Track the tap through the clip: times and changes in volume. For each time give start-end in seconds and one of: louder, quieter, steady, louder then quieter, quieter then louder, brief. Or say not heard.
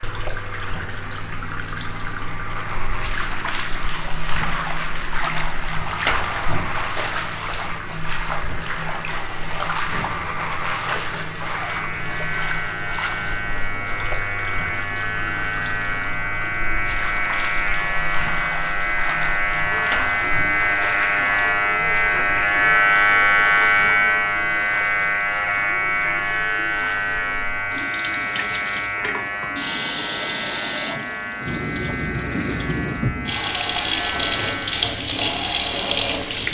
0.0-36.4 quieter then louder.